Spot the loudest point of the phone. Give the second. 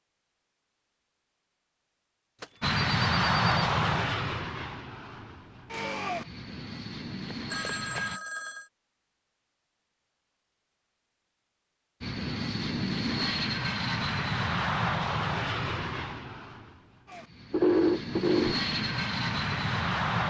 18 s.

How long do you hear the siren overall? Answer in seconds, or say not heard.
not heard.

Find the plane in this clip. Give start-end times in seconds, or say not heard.
2.6-8.2, 12.0-20.2.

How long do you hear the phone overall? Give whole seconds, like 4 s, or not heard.
4 s.